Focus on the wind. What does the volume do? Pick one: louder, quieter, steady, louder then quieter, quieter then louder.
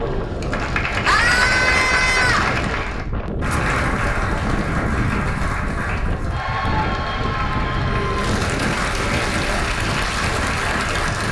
steady.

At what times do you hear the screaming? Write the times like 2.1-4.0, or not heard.
1.1-2.5, 7.8-9.7.